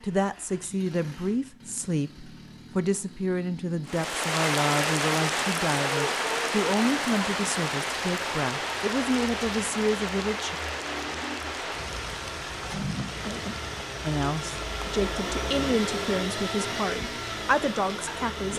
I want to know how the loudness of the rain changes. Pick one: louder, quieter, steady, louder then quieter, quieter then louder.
quieter.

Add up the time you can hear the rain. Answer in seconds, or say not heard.
15 s.